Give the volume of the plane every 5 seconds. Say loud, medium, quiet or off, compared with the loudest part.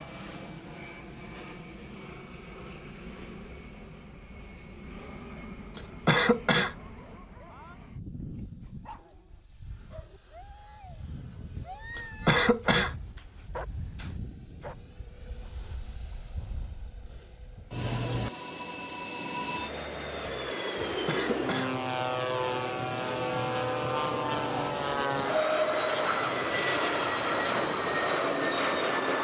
quiet, quiet, quiet, medium, loud, loud.